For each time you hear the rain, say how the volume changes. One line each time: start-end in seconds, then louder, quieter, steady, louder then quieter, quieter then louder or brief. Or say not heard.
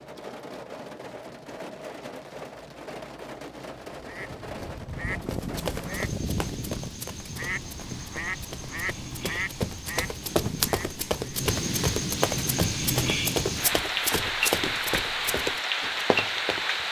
0.0-16.8 louder.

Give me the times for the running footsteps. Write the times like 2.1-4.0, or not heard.
5.2-16.6.